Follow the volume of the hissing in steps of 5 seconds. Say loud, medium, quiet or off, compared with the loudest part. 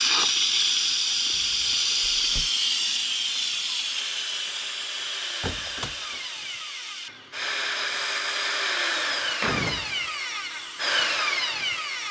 loud, quiet, quiet.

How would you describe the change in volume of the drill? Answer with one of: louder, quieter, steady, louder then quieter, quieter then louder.
louder.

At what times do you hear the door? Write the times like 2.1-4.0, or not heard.
1.3-2.5, 5.0-6.2, 8.9-9.9.